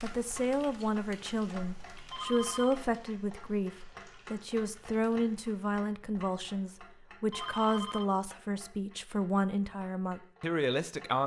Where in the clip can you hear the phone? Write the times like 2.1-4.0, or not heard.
2.1-2.8, 7.3-8.1.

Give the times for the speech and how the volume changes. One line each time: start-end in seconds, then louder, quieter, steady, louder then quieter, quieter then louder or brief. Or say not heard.
0.0-11.2 steady.